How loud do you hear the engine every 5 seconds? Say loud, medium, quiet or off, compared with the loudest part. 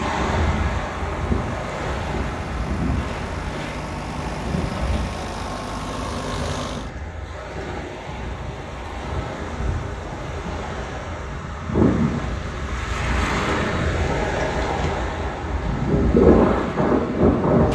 loud, loud, off, off.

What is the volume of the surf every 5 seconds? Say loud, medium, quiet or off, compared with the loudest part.
medium, quiet, medium, loud.